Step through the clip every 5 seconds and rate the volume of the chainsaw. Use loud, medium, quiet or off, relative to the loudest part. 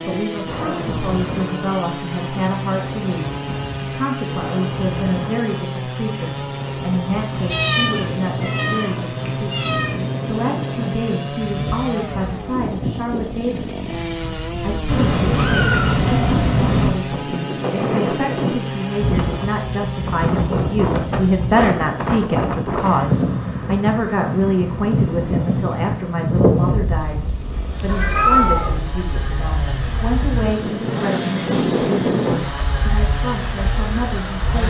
loud, loud, loud, loud, medium, medium, loud.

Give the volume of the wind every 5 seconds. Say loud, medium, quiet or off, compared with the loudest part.
medium, medium, medium, loud, loud, loud, loud.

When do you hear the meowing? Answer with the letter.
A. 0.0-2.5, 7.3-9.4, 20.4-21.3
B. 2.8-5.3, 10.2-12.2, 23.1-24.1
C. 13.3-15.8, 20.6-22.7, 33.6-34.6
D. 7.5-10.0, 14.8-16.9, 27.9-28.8
D.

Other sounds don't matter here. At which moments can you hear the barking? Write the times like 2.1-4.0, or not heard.
not heard.